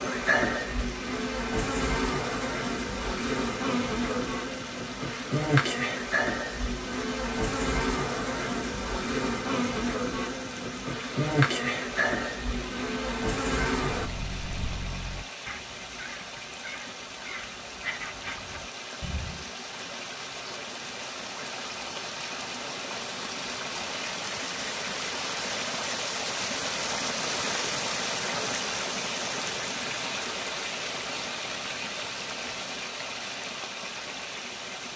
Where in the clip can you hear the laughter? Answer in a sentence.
The laughter can't be heard in this clip.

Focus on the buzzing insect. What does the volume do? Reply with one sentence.
The loudness of the buzzing insect stays about the same.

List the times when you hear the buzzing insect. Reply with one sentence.
The buzzing insect can be heard from 0.0 to 14.1 s.